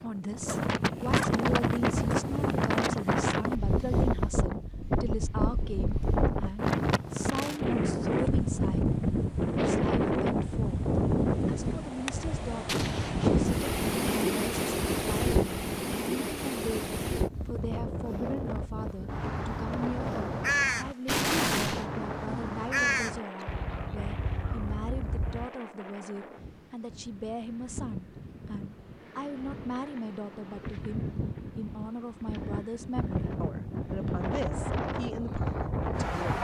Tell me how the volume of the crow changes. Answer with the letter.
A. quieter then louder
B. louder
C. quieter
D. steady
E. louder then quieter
C.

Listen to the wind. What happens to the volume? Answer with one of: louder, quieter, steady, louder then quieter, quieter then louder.
quieter then louder.